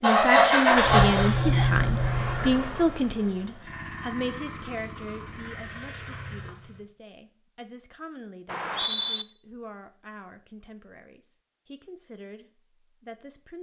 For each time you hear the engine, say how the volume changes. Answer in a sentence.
You can hear the engine from 0.0 to 6.8 s, getting quieter.